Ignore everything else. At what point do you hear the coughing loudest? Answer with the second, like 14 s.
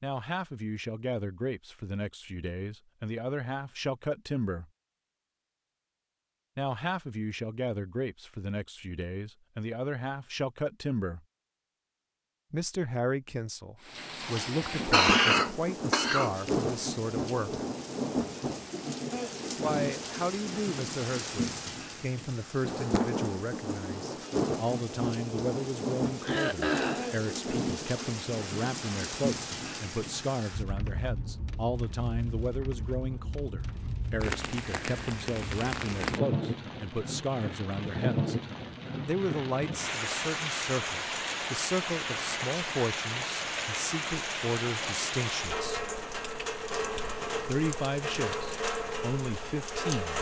15 s.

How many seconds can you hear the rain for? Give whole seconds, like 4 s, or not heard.
36 s.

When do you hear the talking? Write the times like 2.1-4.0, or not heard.
0.0-4.7, 6.5-11.2, 12.5-17.6, 19.6-38.4, 39.0-45.9, 47.4-50.1.